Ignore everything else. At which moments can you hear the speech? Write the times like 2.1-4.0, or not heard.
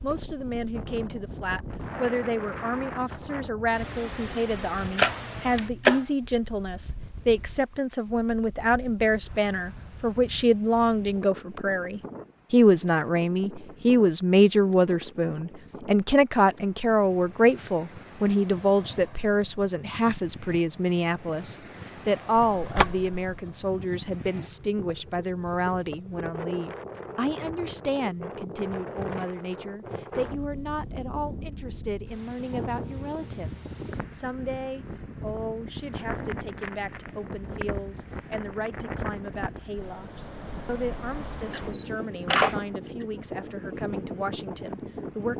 0.0-45.3.